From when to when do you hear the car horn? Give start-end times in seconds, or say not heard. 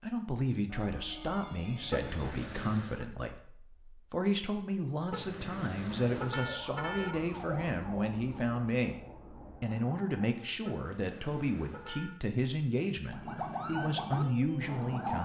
1.9-3.0, 5.1-7.2, 10.7-12.2.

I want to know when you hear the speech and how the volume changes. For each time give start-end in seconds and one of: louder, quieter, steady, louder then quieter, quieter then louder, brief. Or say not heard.
0.0-15.2 steady.